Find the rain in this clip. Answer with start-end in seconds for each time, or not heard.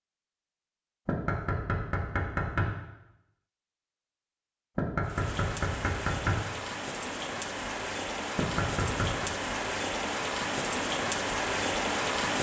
5.0-12.3.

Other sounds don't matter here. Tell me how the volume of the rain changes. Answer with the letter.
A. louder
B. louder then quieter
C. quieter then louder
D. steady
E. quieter
A.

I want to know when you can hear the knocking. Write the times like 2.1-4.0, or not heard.
1.1-2.6, 4.8-6.3, 8.3-9.3.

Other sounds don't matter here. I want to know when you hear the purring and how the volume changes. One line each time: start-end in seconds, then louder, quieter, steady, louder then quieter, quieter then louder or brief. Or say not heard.
not heard.